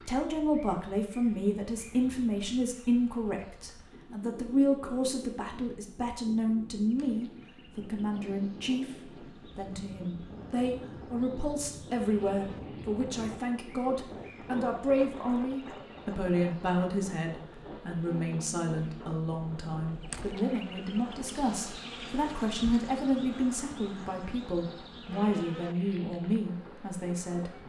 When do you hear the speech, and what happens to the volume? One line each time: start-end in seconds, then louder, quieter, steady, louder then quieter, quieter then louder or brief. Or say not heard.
0.0-27.5 steady.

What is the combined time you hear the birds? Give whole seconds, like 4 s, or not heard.
not heard.